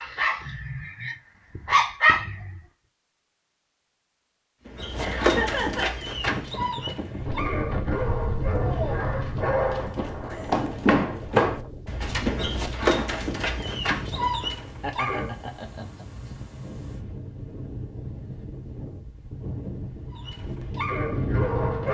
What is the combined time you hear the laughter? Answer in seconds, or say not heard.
2 s.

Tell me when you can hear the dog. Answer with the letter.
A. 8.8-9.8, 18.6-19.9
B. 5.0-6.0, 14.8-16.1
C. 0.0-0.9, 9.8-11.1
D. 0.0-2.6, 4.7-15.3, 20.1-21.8
D.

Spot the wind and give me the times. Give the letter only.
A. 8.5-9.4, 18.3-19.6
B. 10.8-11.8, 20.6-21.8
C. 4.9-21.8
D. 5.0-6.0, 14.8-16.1
C.